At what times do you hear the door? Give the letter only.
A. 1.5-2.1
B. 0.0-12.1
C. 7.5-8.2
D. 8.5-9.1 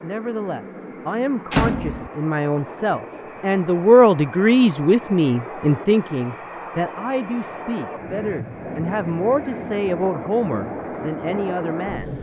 A.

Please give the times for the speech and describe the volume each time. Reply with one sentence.
The speech can be heard from 0.0 to 12.1 s, getting louder then quieter.